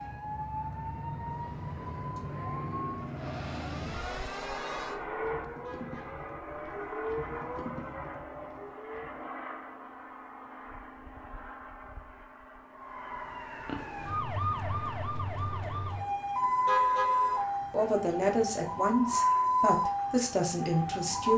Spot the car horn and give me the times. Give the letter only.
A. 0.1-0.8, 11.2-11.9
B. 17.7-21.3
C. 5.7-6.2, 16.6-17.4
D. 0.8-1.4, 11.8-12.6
C.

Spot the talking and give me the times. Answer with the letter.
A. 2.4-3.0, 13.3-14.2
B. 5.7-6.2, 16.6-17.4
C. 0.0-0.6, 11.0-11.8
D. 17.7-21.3
D.